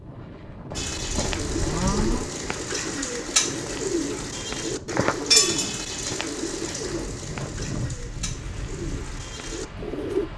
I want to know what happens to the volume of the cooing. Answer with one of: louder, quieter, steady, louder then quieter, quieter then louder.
louder then quieter.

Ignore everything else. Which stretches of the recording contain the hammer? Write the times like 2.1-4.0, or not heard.
not heard.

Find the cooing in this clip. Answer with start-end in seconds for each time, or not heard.
0.8-10.3.